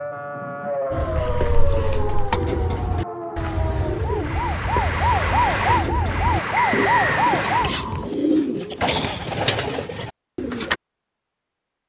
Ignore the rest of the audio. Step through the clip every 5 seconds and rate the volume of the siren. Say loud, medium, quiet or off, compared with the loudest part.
medium, loud, off.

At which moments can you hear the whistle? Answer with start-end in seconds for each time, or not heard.
6.5-7.2.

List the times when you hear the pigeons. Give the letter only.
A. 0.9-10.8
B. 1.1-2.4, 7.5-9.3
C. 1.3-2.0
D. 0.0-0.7
A.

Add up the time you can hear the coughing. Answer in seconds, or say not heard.
3 s.